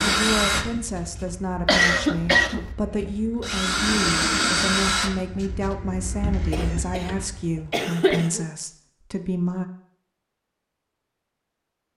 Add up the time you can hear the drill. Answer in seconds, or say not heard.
8 s.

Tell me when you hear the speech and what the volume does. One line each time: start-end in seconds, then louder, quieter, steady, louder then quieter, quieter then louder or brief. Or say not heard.
0.0-9.7 steady.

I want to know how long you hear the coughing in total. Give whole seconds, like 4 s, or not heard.
3 s.